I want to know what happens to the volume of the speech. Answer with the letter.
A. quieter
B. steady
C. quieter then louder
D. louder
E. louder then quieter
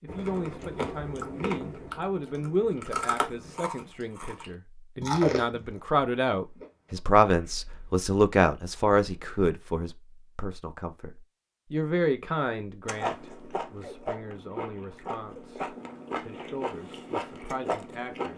E.